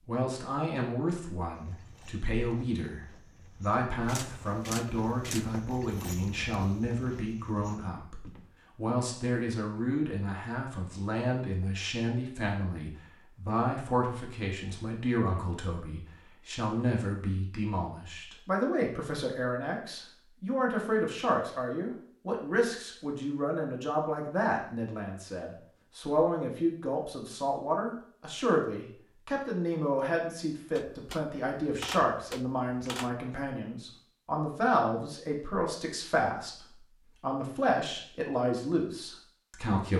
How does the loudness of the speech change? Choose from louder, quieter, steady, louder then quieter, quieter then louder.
steady.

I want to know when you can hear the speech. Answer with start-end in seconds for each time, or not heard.
0.1-39.9.